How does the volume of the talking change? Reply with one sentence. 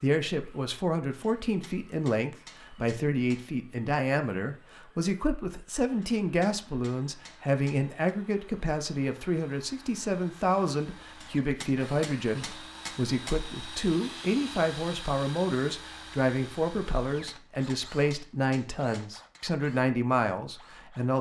The volume of the talking stays about the same.